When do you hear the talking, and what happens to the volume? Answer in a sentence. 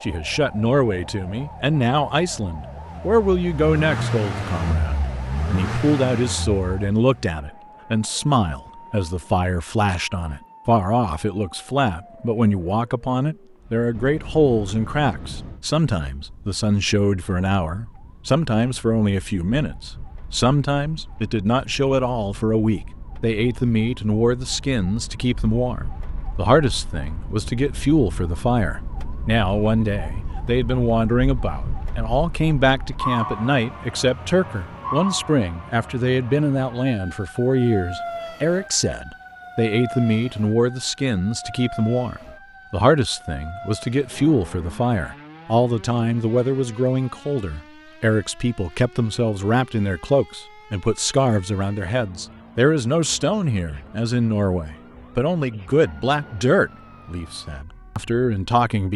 The talking can be heard from 0.0 to 58.9 s, at a steady volume.